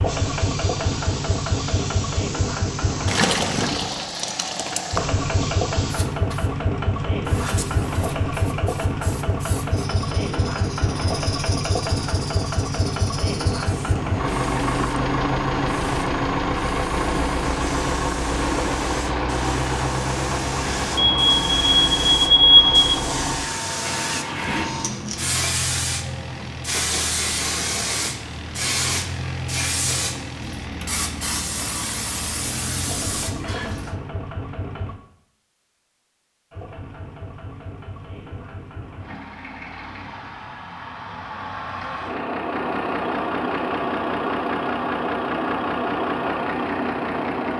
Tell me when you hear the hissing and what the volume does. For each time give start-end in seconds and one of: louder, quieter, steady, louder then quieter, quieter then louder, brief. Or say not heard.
0.0-34.0 louder.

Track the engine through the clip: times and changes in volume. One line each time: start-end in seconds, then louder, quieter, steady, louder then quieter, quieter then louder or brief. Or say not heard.
0.0-35.0 quieter
36.5-47.5 louder.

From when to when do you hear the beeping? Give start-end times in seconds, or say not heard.
20.9-22.9.